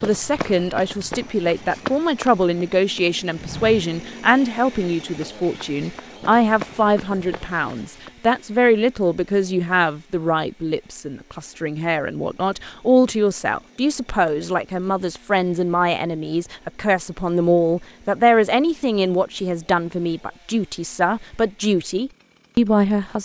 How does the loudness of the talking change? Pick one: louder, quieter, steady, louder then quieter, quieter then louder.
steady.